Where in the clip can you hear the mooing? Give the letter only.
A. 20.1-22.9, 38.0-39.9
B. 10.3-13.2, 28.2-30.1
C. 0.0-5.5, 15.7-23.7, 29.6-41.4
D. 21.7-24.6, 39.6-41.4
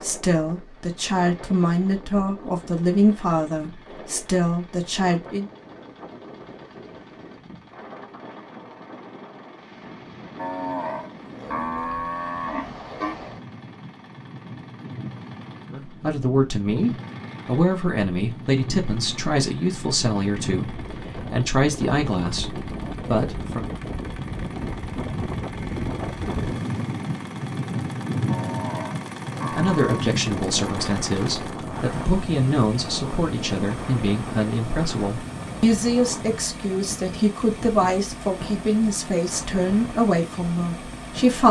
B.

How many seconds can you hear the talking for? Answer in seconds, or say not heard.
25 s.